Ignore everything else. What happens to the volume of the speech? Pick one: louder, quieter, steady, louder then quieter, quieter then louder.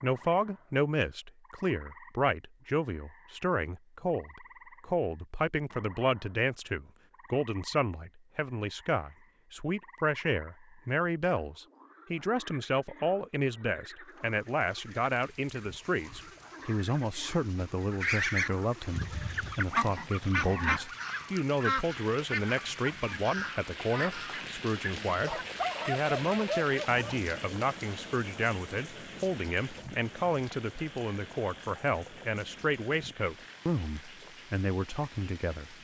steady.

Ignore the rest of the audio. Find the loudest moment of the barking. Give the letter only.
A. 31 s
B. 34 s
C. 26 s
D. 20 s
C.